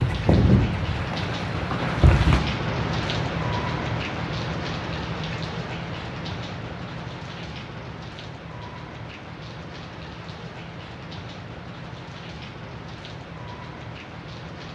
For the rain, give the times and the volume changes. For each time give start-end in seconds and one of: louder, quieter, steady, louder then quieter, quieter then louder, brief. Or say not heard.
0.0-14.7 quieter.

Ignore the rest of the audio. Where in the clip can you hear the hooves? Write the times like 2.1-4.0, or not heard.
0.0-2.4.